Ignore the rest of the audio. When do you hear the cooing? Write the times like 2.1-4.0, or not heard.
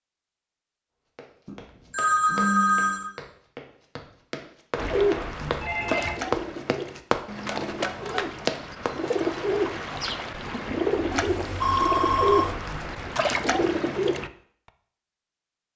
4.8-14.3.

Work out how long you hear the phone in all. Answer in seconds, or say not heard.
4 s.